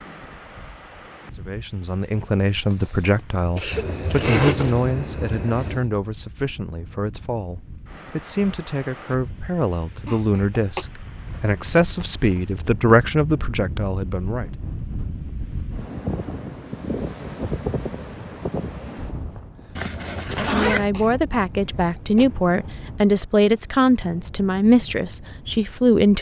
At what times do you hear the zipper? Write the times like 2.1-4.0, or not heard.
3.7-5.8, 11.3-12.8, 19.8-20.9.